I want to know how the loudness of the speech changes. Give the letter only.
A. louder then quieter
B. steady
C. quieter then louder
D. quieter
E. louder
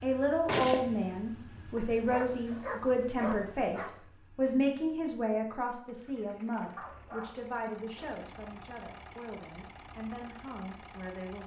D.